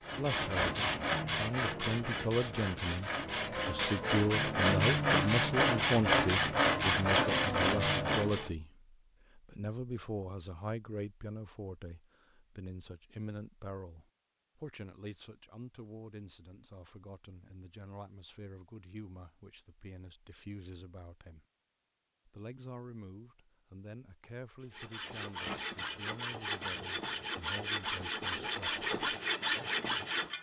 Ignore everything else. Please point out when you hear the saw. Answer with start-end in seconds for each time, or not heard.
0.1-8.5, 24.7-30.3.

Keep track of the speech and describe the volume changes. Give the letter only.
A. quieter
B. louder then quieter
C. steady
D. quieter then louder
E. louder
A.